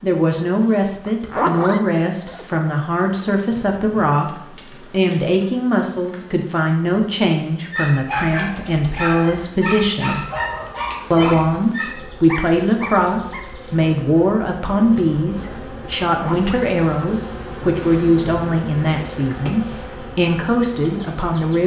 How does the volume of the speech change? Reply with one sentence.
The volume of the speech stays about the same.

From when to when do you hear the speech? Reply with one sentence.
You can hear the speech from 0.0 to 4.3 s, from 4.9 to 10.2 s and from 11.1 to 21.6 s.